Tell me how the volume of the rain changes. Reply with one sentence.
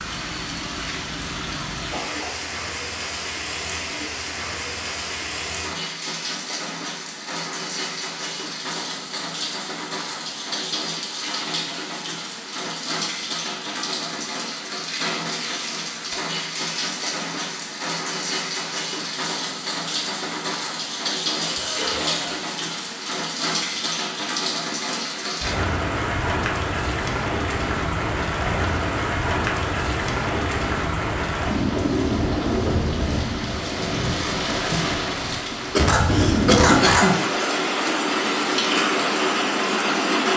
The volume of the rain goes up.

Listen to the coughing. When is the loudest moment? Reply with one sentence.
The loudest moment of the coughing is at 37 seconds.